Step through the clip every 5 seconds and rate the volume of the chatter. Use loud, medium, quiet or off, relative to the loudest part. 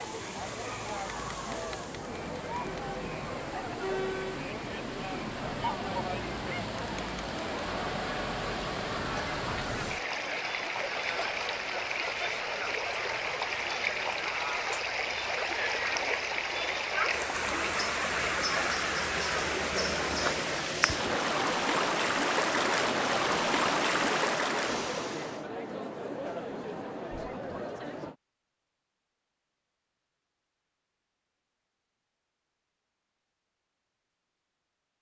loud, loud, loud, loud, loud, loud, off.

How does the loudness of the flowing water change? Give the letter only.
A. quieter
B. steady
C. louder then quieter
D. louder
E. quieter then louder
D.